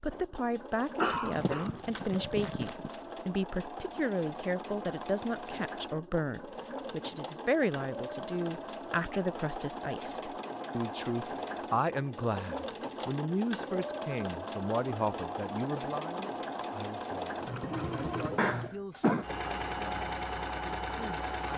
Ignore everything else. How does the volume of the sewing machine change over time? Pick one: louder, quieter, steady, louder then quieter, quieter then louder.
louder.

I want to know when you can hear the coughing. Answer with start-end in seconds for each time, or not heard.
1.0-2.9, 18.4-19.2.